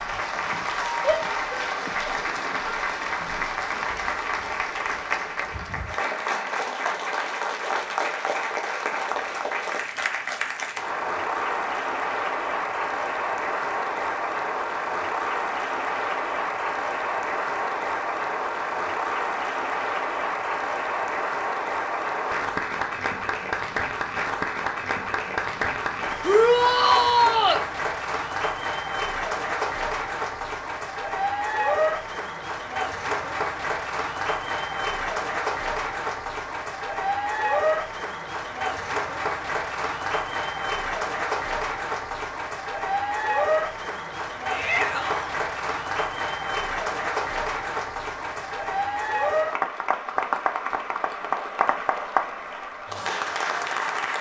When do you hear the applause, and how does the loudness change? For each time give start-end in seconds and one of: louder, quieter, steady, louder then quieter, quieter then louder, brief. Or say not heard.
0.0-54.1 steady.